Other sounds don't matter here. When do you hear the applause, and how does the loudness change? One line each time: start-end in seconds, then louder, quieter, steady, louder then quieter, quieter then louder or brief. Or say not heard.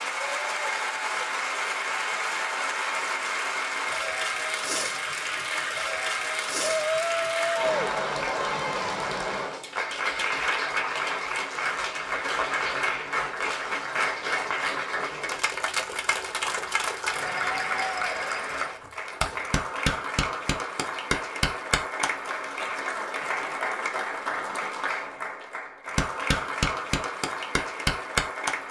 0.0-28.6 steady.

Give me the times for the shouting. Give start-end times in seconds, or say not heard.
6.7-8.0.